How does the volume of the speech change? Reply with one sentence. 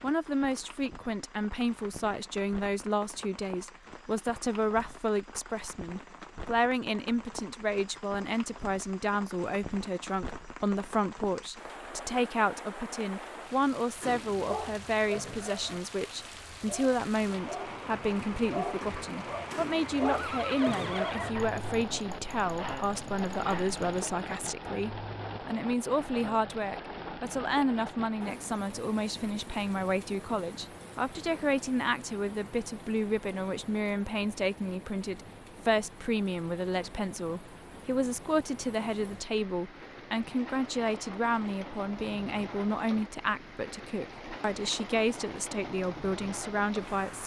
The loudness of the speech stays about the same.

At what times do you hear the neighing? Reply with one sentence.
The neighing can be heard from 20.1 to 21.4 s.